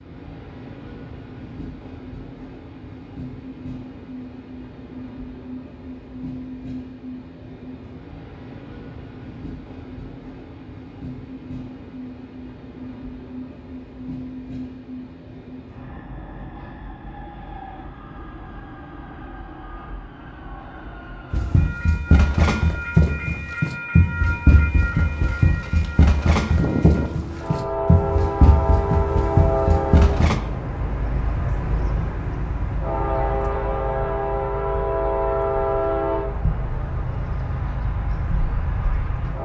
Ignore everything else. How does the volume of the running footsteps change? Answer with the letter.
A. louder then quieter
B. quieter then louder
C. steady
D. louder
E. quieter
C.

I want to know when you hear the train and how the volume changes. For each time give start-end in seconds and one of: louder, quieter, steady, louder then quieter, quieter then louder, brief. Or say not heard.
0.0-39.4 louder.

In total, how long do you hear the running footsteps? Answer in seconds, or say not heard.
9 s.